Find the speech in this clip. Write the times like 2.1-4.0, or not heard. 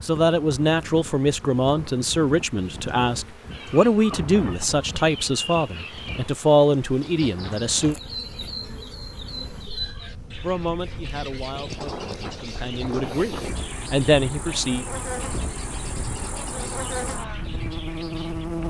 0.0-8.0, 10.4-14.8.